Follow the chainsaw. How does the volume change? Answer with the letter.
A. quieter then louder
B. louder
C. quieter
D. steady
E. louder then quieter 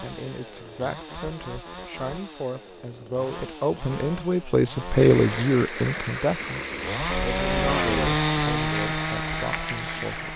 B.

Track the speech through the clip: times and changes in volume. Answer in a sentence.
The speech can be heard from 0.0 to 10.3 s, getting louder then quieter.